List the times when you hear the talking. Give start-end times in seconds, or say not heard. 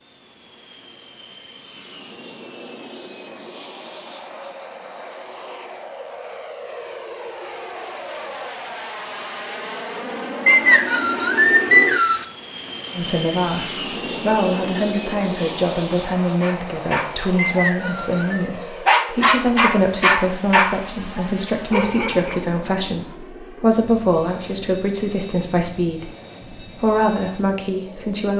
12.9-28.3.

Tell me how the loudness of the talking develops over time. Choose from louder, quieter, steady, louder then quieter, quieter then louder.
steady.